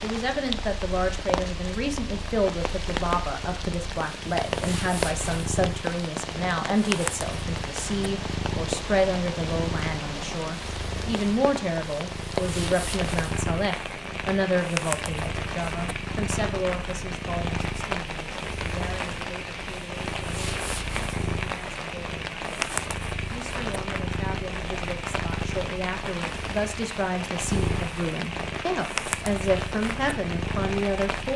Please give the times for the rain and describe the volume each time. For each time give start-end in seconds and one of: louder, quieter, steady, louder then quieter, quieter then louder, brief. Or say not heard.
0.0-31.3 steady.